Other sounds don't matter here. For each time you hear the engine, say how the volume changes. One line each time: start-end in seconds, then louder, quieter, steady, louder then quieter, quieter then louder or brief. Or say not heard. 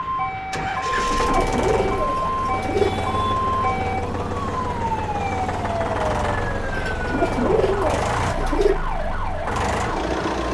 0.0-10.4 steady.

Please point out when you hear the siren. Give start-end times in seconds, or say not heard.
0.0-10.4.